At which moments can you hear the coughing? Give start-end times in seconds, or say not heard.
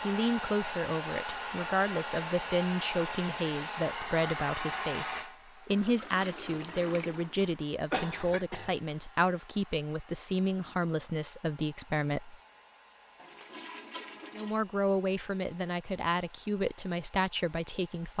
7.3-8.8.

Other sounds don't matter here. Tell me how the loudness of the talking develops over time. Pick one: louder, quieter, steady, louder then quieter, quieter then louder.
steady.